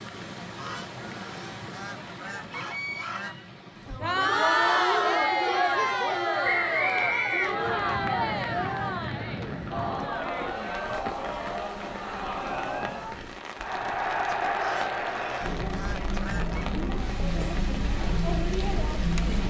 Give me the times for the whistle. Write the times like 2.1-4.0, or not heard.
6.4-8.0.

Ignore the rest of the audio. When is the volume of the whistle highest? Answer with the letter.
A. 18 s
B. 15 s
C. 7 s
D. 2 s
C.